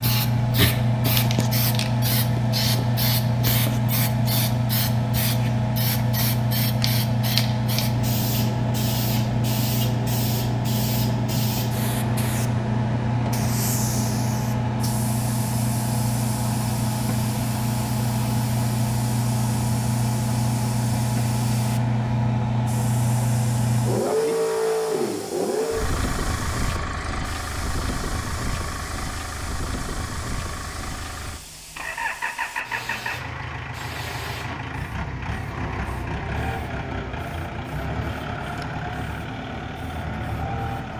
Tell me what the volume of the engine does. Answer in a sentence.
The volume of the engine goes down.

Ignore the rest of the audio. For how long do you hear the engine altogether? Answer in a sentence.
The engine can be heard for 41 seconds in total.